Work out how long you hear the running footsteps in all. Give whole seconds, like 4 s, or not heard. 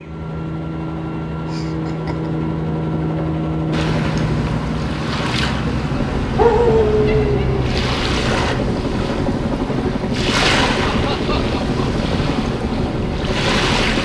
not heard.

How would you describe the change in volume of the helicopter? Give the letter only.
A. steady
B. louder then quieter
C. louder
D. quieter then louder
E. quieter
A.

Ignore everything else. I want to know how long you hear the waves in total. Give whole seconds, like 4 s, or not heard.
10 s.